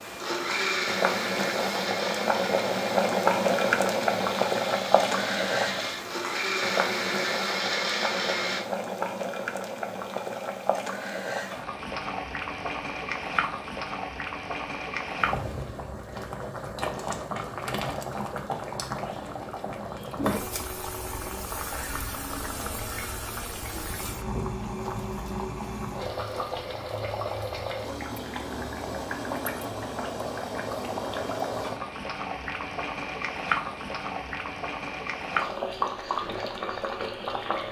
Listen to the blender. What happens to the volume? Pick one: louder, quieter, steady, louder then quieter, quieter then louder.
quieter then louder.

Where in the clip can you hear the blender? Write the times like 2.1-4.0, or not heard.
0.0-8.6.